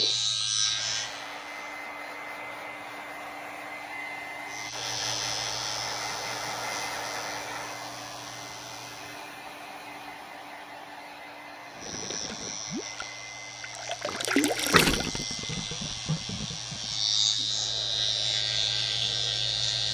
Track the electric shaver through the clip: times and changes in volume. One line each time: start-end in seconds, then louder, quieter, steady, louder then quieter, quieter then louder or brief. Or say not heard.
0.0-1.9 brief
4.5-9.4 quieter
11.7-19.8 louder.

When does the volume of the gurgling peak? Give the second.
15 s.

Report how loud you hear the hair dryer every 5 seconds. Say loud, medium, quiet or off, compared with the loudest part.
loud, loud, medium, medium.